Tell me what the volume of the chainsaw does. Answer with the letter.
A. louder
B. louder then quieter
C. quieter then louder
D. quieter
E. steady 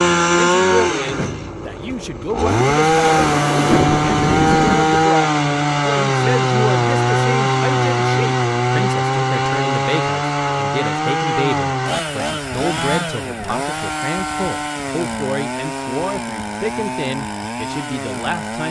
D.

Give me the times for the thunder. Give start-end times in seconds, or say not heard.
2.6-5.0.